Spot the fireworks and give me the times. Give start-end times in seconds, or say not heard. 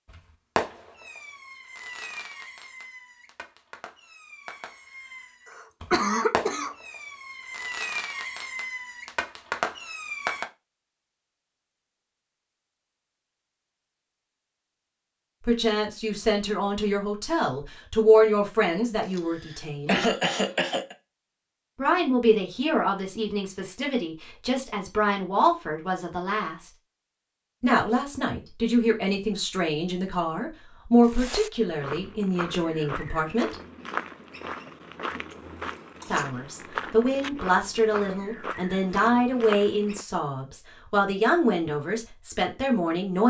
0.1-10.4.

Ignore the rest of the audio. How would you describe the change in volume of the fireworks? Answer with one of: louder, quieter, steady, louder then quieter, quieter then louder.
quieter then louder.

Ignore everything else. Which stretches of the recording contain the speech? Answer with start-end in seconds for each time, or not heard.
15.4-20.1, 21.8-26.7, 27.6-33.5, 36.1-43.2.